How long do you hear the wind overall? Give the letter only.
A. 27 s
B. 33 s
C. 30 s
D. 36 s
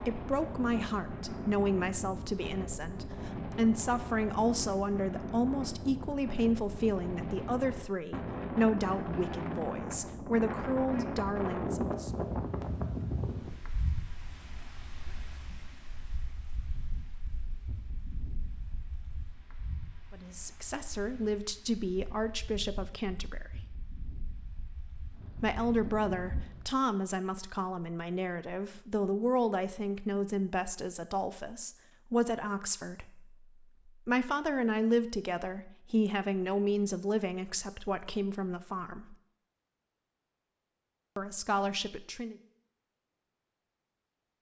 A.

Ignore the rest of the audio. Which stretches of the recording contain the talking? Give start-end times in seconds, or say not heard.
0.0-12.1, 20.1-23.8, 25.4-33.2, 34.0-39.1, 41.1-42.4.